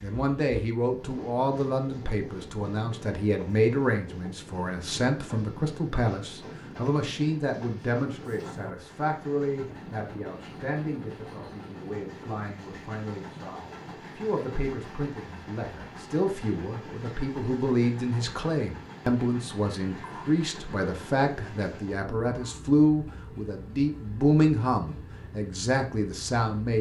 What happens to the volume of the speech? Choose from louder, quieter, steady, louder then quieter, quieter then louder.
quieter then louder.